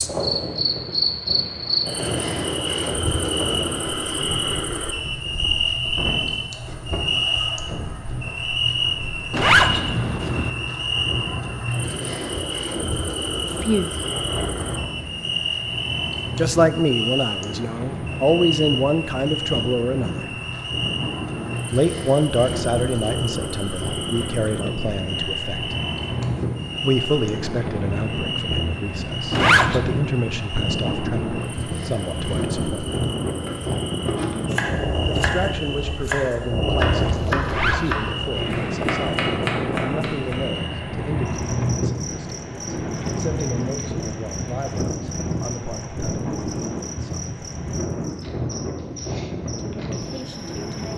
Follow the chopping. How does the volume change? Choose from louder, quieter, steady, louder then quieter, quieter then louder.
steady.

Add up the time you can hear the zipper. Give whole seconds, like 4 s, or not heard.
3 s.